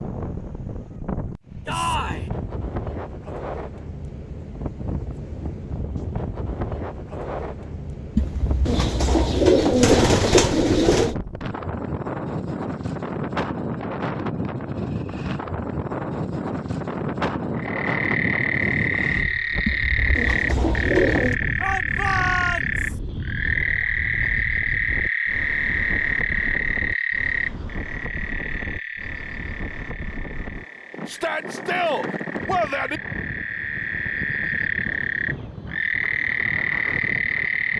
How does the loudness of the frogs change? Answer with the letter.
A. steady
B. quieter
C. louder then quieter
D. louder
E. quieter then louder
E.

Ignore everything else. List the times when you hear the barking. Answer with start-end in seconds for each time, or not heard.
not heard.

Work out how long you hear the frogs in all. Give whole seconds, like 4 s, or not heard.
20 s.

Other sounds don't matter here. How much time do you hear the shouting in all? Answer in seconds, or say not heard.
4 s.